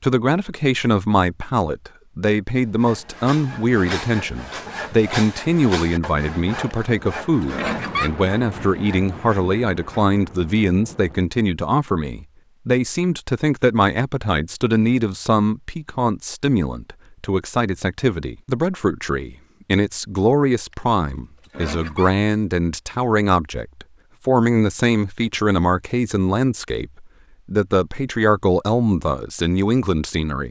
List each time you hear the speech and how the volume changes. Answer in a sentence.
The speech can be heard from 0.0 to 30.4 s, at a steady volume.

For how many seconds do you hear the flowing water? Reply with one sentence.
You can't hear the flowing water here.